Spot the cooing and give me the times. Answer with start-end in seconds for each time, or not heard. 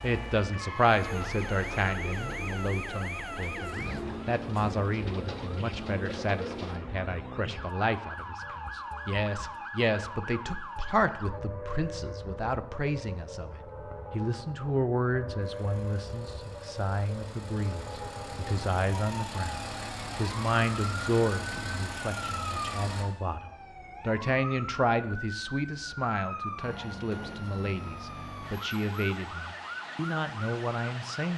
0.9-6.8.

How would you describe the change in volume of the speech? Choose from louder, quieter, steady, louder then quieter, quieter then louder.
steady.